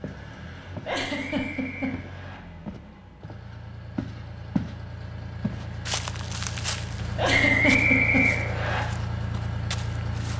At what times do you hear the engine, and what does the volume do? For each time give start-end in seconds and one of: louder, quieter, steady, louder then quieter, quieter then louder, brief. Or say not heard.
0.0-10.3 louder.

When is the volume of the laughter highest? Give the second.
8 s.